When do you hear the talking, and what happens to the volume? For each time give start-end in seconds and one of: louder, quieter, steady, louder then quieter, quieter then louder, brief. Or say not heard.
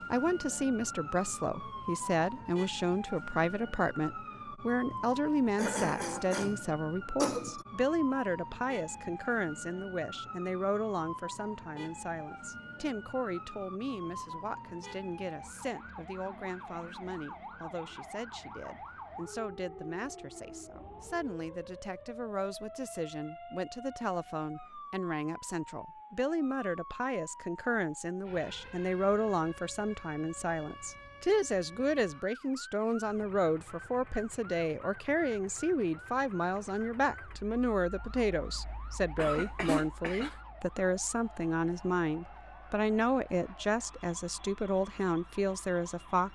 0.1-46.3 quieter then louder.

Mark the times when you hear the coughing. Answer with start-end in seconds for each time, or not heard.
4.9-7.7, 39.1-40.4.